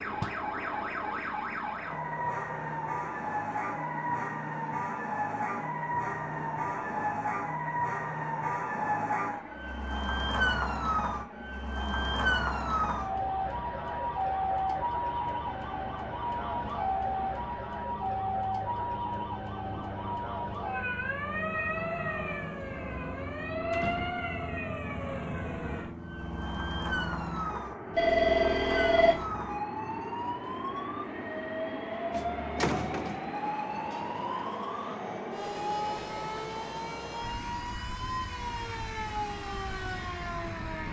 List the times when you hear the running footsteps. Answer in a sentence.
The running footsteps can't be heard in this clip.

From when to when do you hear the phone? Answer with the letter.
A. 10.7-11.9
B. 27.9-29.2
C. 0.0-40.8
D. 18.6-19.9
B.